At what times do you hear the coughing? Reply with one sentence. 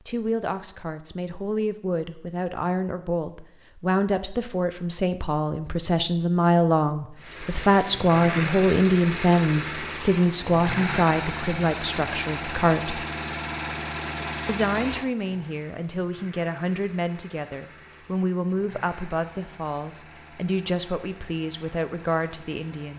You can't hear the coughing here.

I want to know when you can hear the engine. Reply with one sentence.
You can hear the engine from 7.2 to 22.9 s.